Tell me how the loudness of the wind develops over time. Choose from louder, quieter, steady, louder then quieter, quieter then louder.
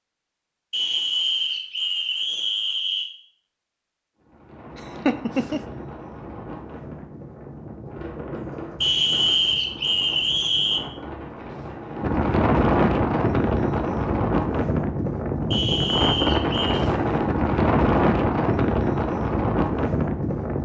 louder.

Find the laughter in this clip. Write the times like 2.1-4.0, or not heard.
4.8-5.6.